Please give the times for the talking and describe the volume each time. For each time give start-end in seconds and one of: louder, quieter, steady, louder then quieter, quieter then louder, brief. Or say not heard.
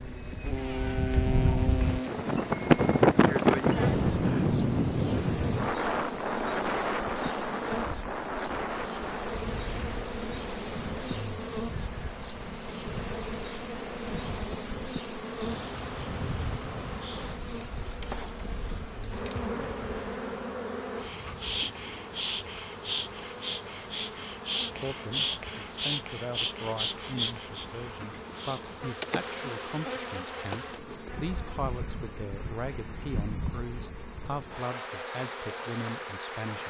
24.8-36.6 steady.